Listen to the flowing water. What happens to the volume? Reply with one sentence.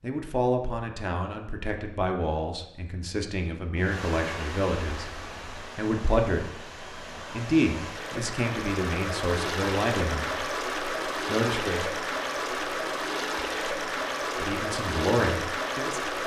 The volume of the flowing water goes up.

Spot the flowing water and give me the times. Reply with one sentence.
You can hear the flowing water from 3.8 to 16.2 s.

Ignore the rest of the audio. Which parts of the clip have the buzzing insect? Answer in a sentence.
The buzzing insect can't be heard in this clip.